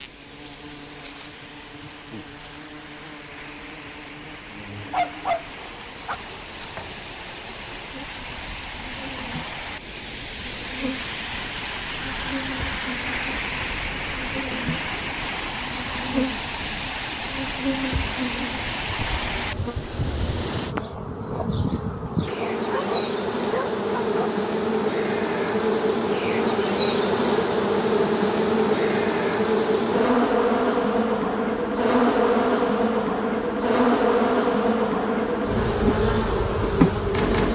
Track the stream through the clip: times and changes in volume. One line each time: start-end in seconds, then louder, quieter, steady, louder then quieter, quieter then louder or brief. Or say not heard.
0.0-20.8 louder.